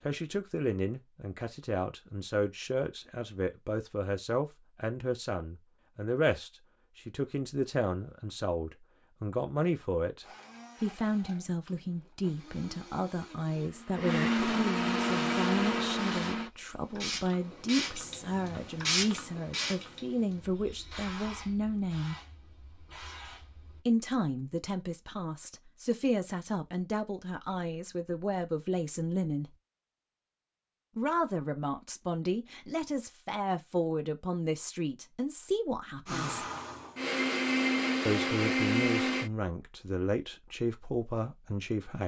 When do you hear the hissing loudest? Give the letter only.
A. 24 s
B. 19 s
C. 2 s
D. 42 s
B.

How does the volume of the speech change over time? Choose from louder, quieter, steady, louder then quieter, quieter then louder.
steady.